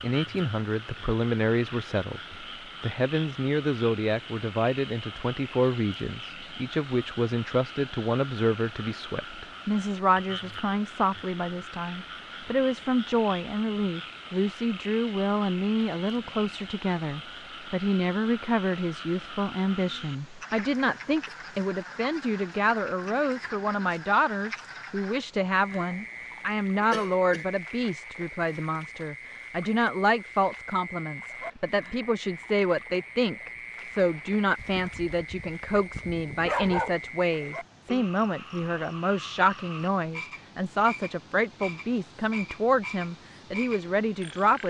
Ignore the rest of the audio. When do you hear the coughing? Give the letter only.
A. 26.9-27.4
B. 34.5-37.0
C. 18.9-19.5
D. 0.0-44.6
A.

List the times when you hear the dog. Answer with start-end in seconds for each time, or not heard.
34.5-37.0.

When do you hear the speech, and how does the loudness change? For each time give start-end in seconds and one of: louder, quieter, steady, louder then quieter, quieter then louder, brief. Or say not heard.
0.0-44.6 steady.